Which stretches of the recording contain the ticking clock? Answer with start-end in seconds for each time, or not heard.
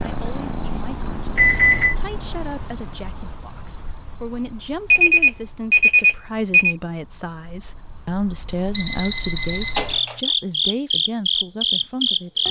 not heard.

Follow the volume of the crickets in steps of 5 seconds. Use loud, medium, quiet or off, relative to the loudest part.
medium, quiet, loud.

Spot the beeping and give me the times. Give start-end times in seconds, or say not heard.
1.4-1.9, 4.9-6.8, 8.7-10.2.